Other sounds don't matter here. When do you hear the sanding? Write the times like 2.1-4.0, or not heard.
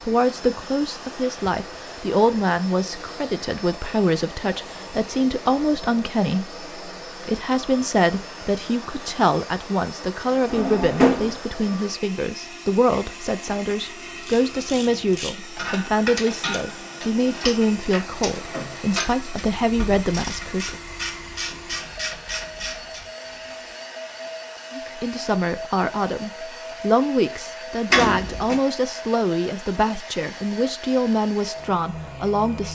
not heard.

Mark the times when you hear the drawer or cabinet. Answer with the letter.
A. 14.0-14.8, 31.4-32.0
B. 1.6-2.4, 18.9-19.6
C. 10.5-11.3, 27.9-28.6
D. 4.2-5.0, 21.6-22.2
C.